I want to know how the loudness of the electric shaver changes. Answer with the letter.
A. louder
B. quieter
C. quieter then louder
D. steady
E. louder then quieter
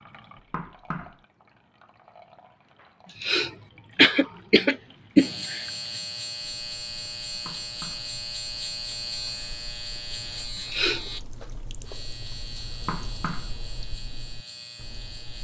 B.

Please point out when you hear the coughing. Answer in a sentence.
You can hear the coughing from 3.0 to 5.6 s and from 10.6 to 11.0 s.